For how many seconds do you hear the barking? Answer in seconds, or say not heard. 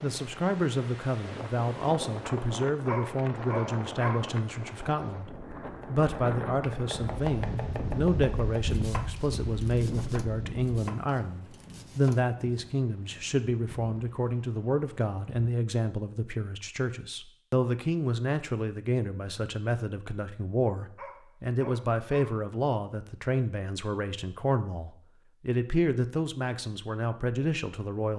3 s.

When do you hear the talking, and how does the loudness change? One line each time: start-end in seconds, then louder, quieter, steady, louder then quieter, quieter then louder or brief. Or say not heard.
0.0-28.1 steady.